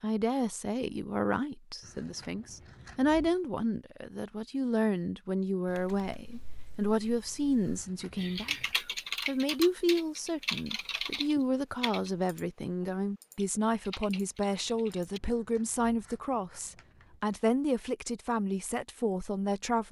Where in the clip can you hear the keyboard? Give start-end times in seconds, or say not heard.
5.7-15.2.